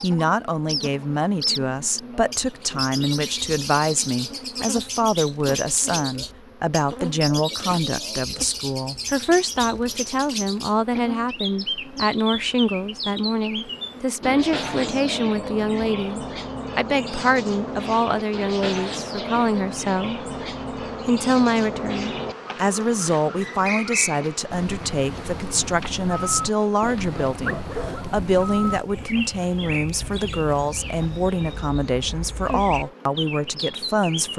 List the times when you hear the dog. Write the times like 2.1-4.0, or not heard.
26.8-28.2.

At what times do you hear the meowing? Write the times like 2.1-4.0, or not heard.
not heard.